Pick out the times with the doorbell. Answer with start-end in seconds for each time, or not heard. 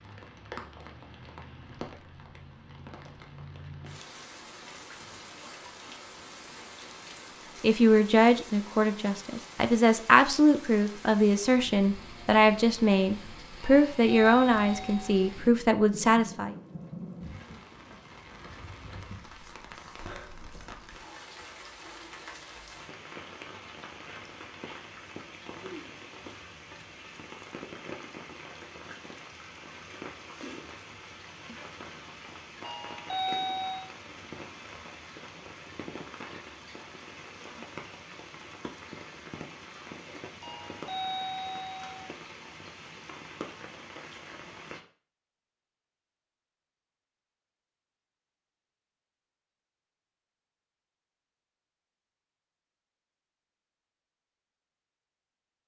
13.6-15.1, 32.6-33.9, 40.4-42.0.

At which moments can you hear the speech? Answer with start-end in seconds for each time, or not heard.
7.6-16.6.